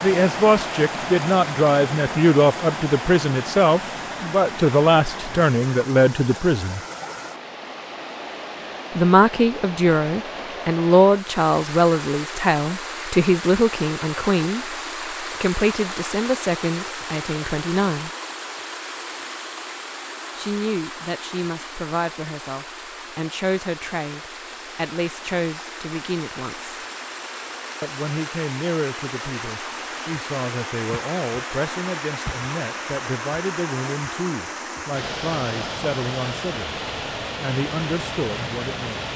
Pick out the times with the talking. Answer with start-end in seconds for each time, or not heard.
0.0-6.8, 8.9-18.1, 20.4-26.8, 27.8-36.8, 37.4-39.0.